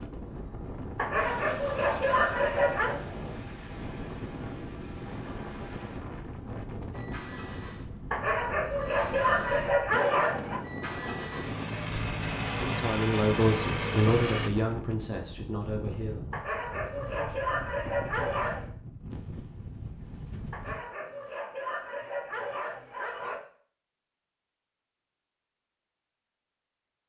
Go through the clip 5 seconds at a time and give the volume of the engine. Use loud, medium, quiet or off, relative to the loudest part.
quiet, quiet, loud, off, off, off.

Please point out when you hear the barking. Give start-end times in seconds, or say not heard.
0.9-3.0, 8.1-10.6, 16.3-18.6, 20.5-23.4.